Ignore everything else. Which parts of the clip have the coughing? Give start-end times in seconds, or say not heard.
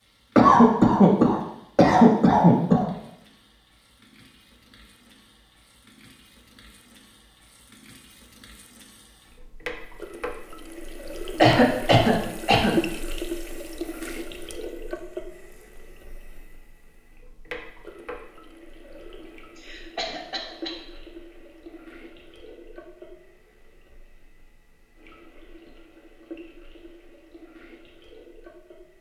0.3-2.9, 11.4-12.8, 19.6-20.8.